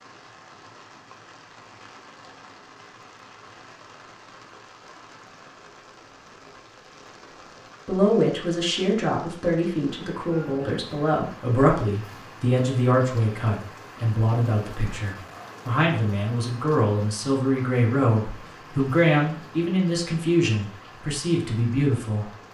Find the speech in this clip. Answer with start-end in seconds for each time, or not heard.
7.8-22.3.